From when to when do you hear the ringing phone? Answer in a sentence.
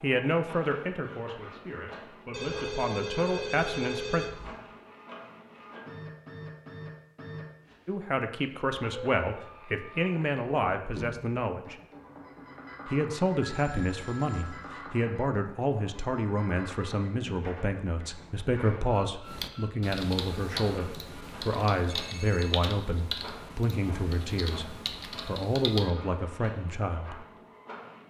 The ringing phone can be heard from 2.3 to 4.5 s, from 13.4 to 14.8 s and from 21.8 to 22.5 s.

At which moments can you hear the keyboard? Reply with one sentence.
The keyboard can be heard from 19.2 to 25.9 s.